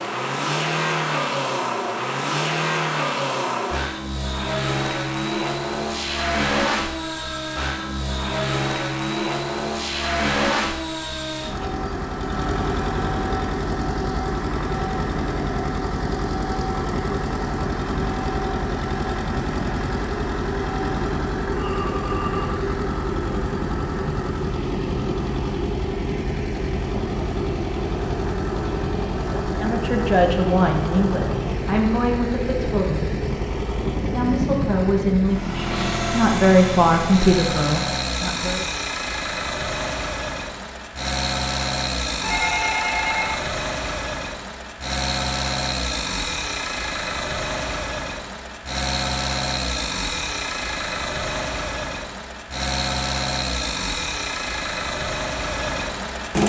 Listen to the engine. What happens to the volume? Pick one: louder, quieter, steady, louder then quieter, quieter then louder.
steady.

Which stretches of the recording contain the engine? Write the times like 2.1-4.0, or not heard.
0.0-56.4.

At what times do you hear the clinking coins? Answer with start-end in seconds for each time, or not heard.
not heard.